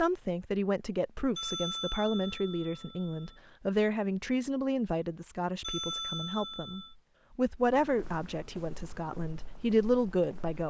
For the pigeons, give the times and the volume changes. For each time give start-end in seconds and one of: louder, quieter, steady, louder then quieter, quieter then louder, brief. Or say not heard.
not heard.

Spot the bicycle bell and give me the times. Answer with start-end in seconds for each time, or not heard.
1.4-3.4, 5.6-7.0.